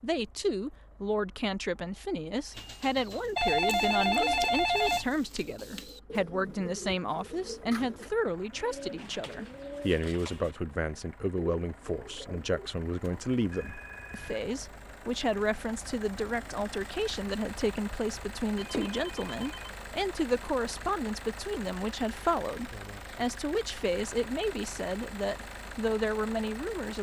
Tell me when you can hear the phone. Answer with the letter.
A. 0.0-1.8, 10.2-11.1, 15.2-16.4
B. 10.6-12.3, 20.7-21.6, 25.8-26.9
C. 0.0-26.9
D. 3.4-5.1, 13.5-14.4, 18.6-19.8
D.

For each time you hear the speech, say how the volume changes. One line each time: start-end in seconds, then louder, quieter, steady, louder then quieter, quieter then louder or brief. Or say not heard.
0.0-26.9 steady.